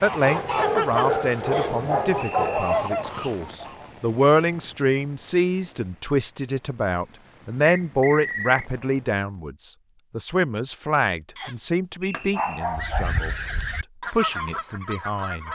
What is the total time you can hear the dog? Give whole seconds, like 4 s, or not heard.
4 s.